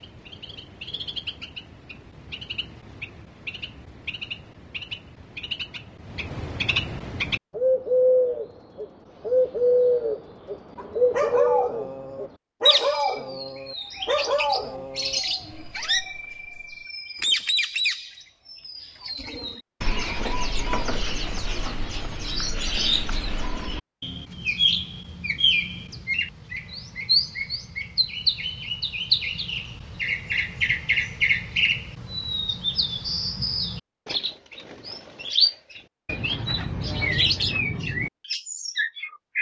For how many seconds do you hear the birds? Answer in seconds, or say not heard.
39 s.